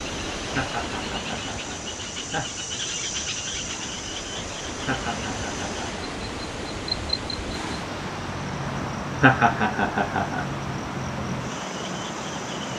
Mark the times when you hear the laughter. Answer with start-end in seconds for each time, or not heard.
0.5-2.6, 4.8-6.0, 9.2-10.4.